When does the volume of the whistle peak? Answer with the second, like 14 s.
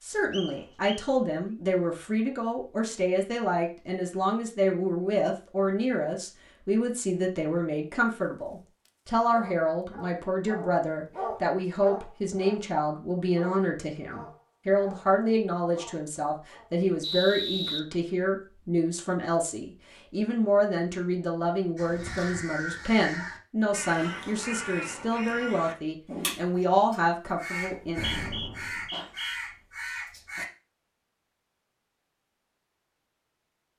17 s.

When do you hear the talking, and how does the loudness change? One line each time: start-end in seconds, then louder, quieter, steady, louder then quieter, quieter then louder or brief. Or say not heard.
0.0-28.1 steady.